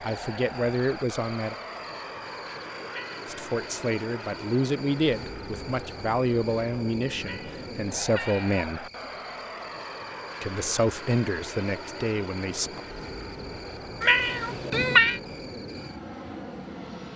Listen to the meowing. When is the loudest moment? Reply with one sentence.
The loudest moment of the meowing is at 15 seconds.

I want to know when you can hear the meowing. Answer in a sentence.
The meowing can be heard from 2.9 to 3.3 s, from 7.2 to 8.7 s and from 14.0 to 15.2 s.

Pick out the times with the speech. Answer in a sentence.
The speech can be heard from 0.0 to 1.6 s, from 3.2 to 8.9 s and from 10.4 to 12.8 s.